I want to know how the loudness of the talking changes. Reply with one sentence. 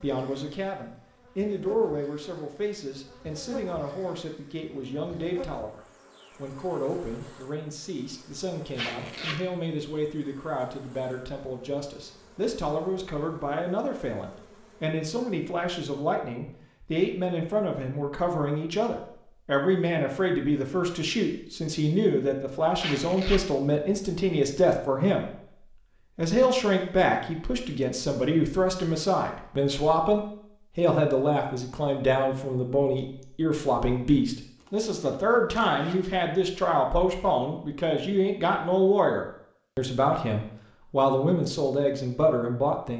The volume of the talking goes up.